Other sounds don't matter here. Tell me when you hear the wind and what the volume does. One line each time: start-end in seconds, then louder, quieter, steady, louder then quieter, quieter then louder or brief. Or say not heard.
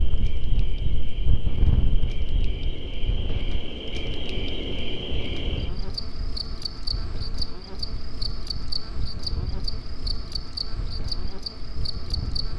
0.0-12.5 quieter.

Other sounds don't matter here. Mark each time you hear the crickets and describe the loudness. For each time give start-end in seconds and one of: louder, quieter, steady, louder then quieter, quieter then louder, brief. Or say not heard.
0.0-12.5 louder.